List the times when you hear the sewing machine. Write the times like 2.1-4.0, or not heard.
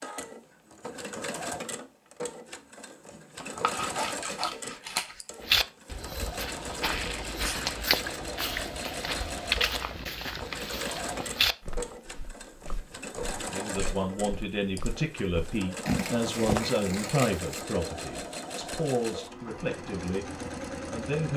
0.0-21.3.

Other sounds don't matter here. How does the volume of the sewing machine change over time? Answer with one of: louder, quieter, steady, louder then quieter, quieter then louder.
steady.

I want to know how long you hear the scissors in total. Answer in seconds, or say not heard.
4 s.